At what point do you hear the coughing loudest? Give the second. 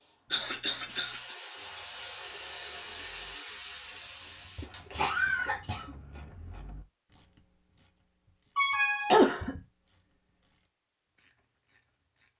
9 s.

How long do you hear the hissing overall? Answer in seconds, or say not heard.
6 s.